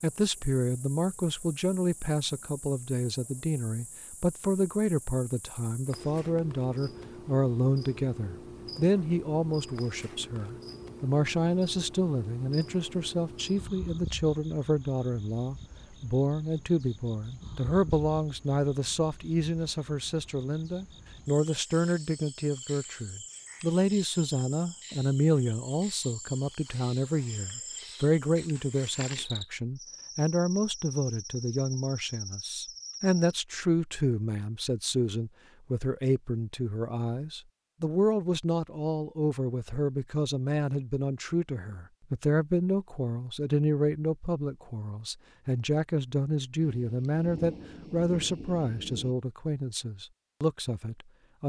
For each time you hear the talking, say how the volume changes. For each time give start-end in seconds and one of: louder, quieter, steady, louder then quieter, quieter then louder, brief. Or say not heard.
0.0-51.4 steady.